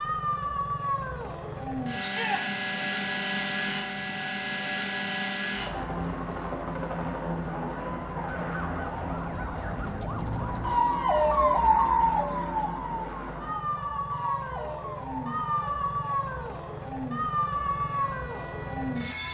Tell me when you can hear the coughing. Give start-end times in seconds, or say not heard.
not heard.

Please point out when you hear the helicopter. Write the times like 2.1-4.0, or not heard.
0.0-19.3.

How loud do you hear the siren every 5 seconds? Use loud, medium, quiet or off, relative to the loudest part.
quiet, quiet, loud, quiet.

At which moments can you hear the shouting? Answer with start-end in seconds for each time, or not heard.
2.0-2.5.